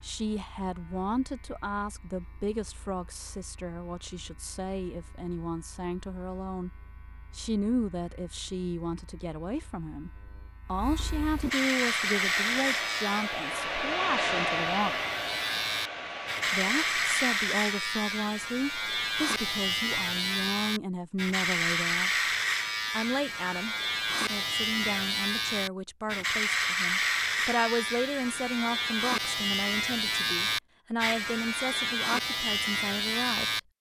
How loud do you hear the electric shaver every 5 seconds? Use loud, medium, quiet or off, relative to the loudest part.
quiet, quiet, loud, loud, loud, loud, loud.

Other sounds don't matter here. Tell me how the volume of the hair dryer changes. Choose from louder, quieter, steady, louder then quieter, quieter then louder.
louder then quieter.